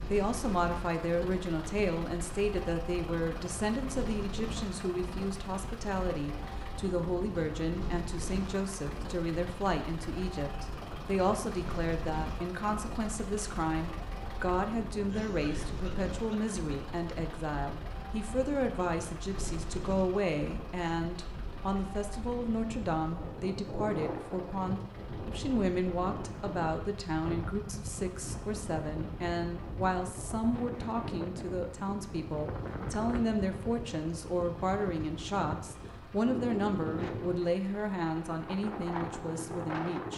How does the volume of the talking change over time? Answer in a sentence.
The volume of the talking stays about the same.